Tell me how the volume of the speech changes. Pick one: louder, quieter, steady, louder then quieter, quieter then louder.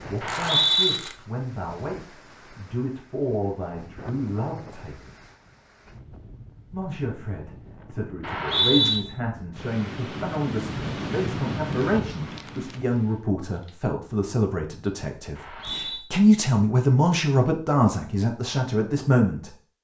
louder.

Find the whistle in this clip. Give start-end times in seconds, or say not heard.
0.2-0.9, 8.2-9.0, 15.3-16.1.